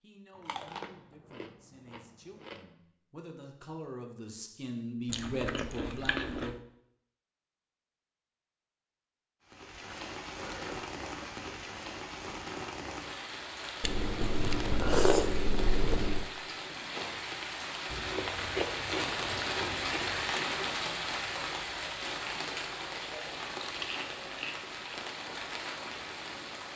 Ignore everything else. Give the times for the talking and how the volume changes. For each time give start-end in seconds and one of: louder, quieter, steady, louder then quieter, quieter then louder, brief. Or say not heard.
0.0-6.5 louder.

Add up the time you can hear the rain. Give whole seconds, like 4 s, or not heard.
17 s.